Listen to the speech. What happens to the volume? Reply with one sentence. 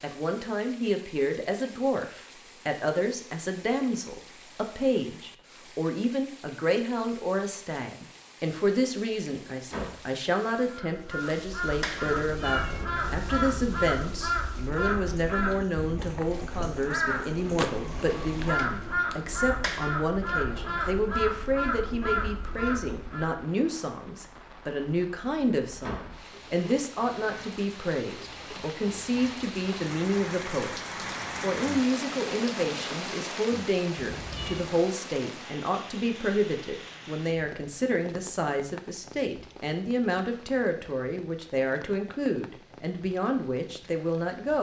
The loudness of the speech stays about the same.